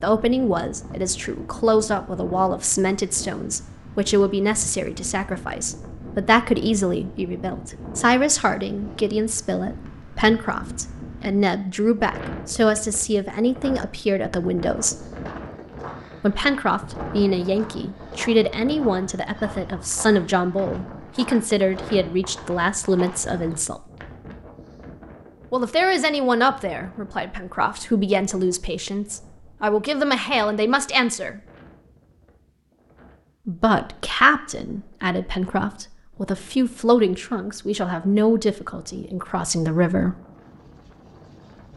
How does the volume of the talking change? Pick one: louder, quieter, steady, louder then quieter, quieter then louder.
steady.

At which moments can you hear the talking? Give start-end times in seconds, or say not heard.
0.0-15.1, 16.2-23.9, 25.5-31.4, 33.5-40.1.